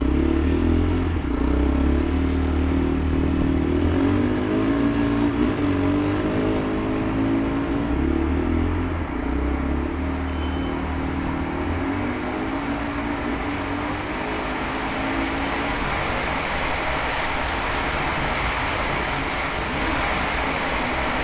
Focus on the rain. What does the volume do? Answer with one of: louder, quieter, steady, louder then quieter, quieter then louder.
louder.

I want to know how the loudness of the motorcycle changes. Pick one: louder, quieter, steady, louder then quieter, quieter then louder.
quieter.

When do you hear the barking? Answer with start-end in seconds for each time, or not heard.
not heard.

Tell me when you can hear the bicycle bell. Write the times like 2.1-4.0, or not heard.
10.2-10.8.